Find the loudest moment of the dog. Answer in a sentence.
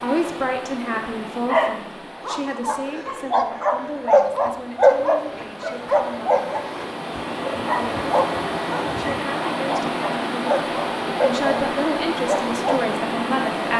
The volume of the dog peaks at 5 seconds.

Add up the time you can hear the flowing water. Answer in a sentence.
The flowing water can be heard for 14 seconds in total.